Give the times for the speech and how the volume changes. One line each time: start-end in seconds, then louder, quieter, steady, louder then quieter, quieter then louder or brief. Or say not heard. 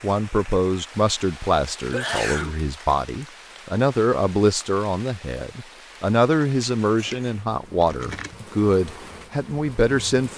0.0-10.3 steady.